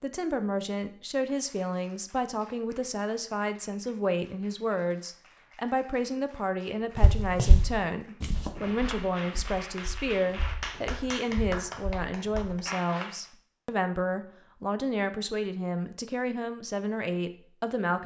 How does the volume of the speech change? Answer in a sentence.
The loudness of the speech stays about the same.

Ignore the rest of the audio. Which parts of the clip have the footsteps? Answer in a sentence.
The footsteps can be heard from 7.0 to 12.5 s.